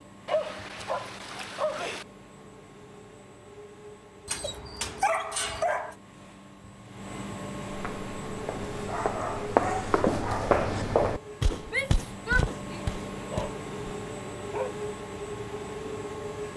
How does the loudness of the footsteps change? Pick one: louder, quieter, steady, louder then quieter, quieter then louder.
louder then quieter.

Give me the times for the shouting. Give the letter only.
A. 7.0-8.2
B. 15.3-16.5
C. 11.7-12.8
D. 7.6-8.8
C.